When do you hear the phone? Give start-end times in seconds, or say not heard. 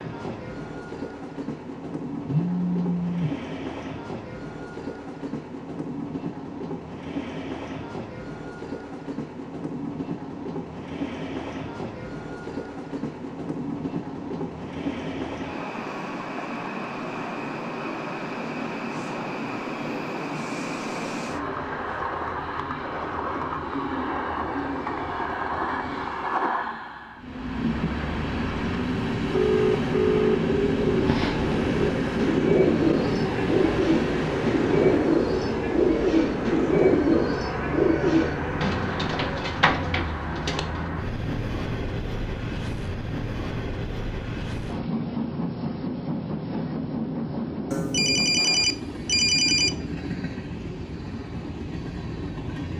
2.2-3.4, 29.3-30.4, 47.7-49.7.